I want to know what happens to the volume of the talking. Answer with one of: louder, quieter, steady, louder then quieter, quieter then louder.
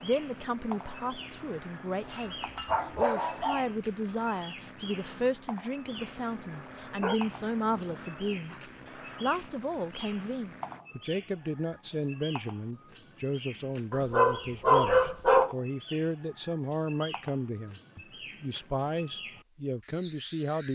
steady.